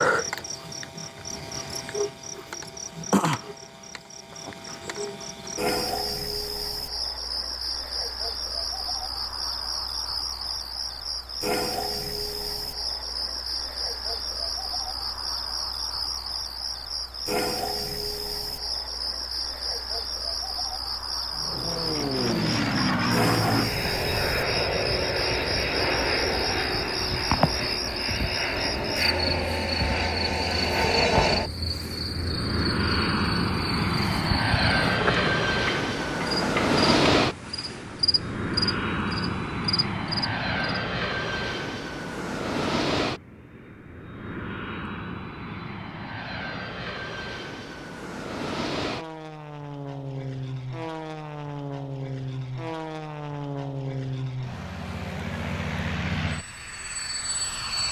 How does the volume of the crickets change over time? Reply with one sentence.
The volume of the crickets stays about the same.